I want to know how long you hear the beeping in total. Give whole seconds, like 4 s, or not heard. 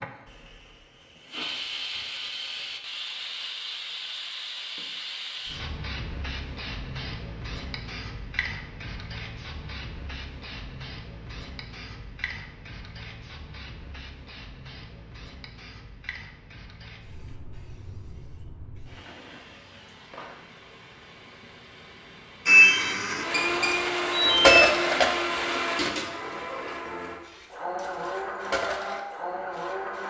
2 s.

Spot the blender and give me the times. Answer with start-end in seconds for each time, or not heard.
22.4-30.0.